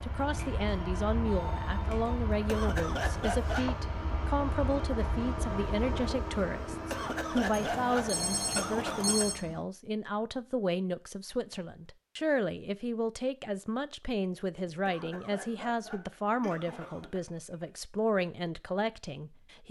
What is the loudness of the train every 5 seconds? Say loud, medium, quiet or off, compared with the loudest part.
loud, loud, off, off.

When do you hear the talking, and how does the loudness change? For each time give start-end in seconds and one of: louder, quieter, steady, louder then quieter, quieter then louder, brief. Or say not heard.
0.0-19.6 steady.